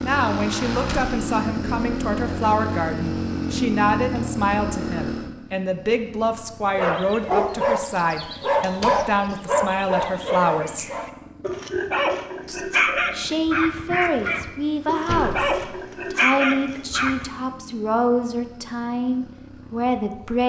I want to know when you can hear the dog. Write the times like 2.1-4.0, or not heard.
6.8-17.2.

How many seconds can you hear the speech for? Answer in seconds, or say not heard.
19 s.